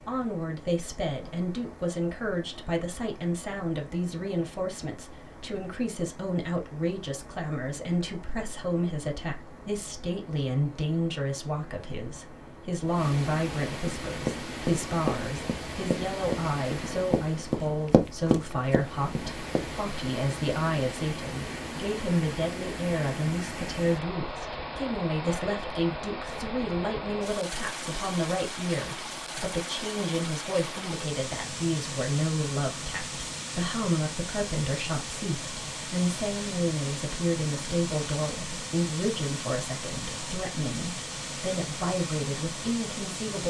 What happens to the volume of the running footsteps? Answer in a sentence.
The volume of the running footsteps goes down, then up.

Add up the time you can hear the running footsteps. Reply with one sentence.
You can hear the running footsteps for 6 seconds altogether.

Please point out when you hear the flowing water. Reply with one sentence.
The flowing water can be heard from 0.0 to 43.4 s.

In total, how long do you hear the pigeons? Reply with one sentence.
The pigeons can't be heard in this clip.